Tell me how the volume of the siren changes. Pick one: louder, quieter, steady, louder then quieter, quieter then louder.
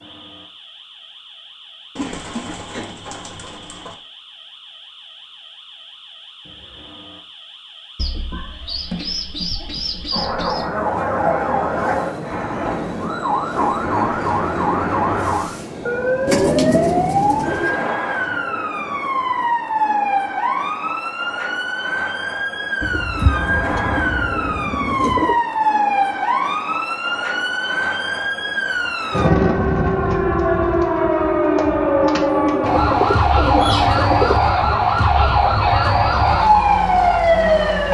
louder.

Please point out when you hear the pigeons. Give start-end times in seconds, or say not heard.
1.9-4.0, 8.0-10.7, 16.2-17.9, 22.8-25.4, 32.6-34.4.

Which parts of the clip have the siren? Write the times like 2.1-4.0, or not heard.
0.0-37.8.